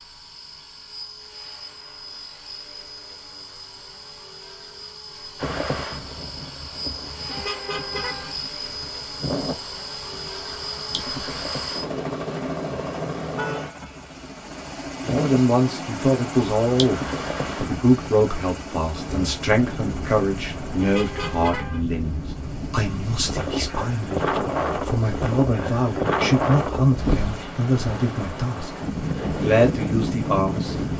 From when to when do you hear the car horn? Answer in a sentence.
The car horn can be heard from 7.3 to 8.3 s, from 13.3 to 14.1 s and from 20.8 to 21.9 s.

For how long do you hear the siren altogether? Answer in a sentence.
The siren can't be heard in this clip.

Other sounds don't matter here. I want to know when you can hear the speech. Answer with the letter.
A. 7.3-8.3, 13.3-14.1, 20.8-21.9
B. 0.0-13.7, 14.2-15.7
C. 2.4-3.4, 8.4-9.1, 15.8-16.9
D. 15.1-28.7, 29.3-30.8
D.